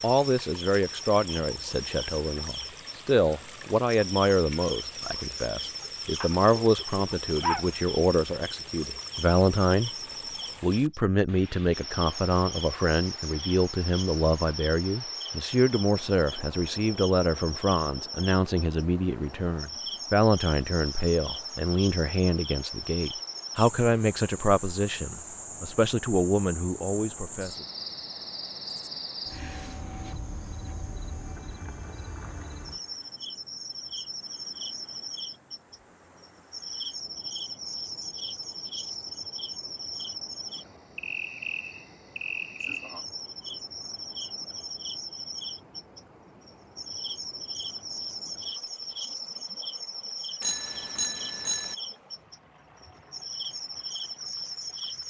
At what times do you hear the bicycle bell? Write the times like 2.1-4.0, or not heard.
50.4-51.8.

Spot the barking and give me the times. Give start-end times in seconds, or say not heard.
6.2-7.7.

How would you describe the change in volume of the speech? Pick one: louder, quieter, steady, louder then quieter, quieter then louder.
steady.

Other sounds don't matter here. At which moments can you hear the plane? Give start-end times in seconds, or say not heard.
not heard.